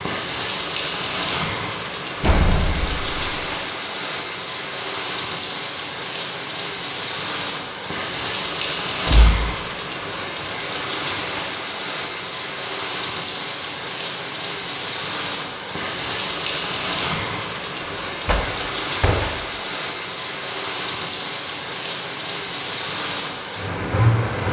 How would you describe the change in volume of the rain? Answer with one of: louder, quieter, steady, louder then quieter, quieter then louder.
steady.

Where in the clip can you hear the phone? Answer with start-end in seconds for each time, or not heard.
not heard.